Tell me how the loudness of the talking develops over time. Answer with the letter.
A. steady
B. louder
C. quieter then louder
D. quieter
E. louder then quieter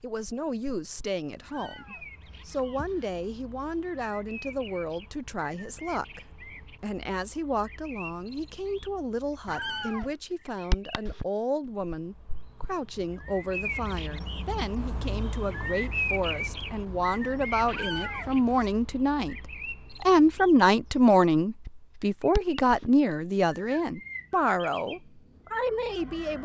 B.